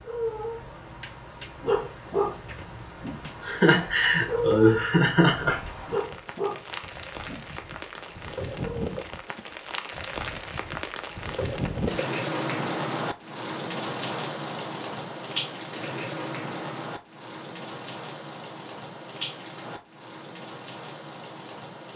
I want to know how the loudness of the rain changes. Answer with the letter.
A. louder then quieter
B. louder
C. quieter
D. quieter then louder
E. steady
A.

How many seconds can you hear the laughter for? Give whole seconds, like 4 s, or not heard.
2 s.